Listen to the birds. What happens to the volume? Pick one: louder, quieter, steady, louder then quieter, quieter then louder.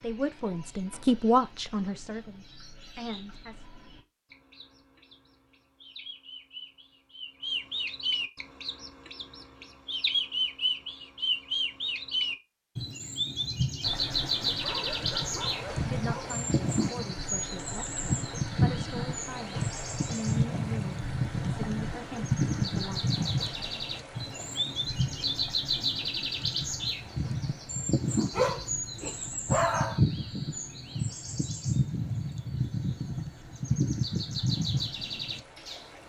louder.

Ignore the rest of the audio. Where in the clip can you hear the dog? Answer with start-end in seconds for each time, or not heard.
14.6-16.4, 28.3-30.0.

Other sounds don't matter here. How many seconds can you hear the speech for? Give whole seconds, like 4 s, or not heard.
11 s.